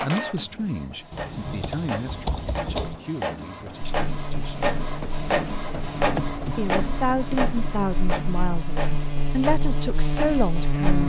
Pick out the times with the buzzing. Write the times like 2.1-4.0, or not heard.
3.8-11.0.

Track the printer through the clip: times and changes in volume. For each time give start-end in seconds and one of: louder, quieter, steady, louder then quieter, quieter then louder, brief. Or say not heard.
0.0-11.0 louder then quieter.